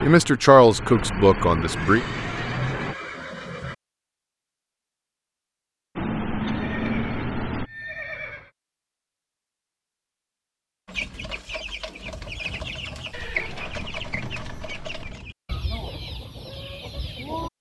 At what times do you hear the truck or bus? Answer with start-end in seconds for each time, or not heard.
0.0-3.0, 6.0-7.7.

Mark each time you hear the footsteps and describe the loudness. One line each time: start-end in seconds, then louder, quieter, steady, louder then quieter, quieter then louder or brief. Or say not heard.
not heard.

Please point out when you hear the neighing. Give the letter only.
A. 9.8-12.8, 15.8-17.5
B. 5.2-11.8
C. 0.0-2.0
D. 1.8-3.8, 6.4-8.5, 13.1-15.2
D.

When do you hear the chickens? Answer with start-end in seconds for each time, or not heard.
10.8-17.5.